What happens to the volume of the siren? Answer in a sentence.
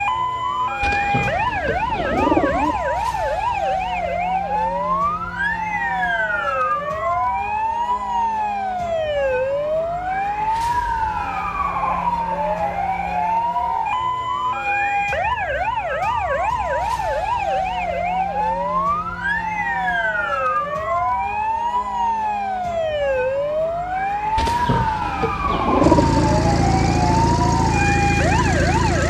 The volume of the siren stays about the same.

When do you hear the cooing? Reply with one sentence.
You can hear the cooing from 0.8 to 2.8 s and from 24.4 to 26.4 s.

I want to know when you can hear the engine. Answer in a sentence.
You can hear the engine from 25.8 to 29.0 s.